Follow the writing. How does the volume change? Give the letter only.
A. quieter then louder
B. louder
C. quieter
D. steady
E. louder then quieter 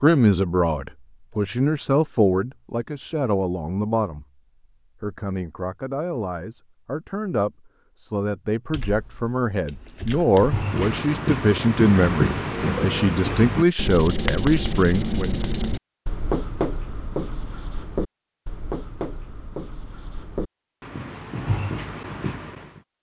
C.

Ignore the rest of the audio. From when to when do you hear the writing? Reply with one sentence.
You can hear the writing from 10.3 to 22.8 s.